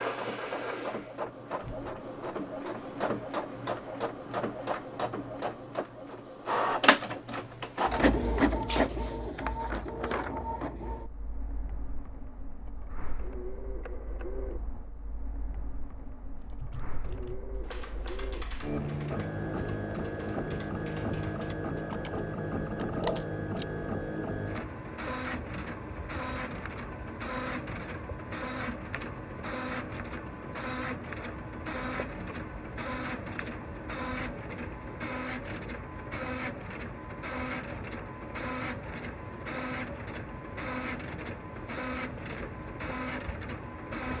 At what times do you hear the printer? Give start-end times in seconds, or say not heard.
0.0-44.1.